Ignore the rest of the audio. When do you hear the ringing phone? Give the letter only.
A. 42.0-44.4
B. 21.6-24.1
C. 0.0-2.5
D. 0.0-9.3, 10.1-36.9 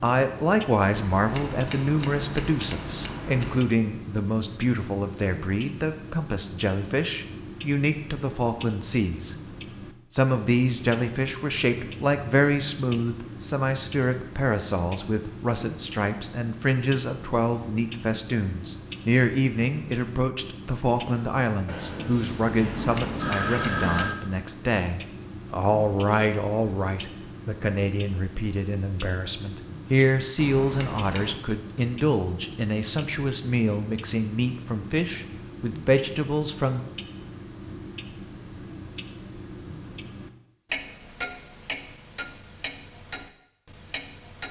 B.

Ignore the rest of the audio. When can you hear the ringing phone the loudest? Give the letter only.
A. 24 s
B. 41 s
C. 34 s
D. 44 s
A.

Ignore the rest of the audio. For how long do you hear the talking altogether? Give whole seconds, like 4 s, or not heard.
36 s.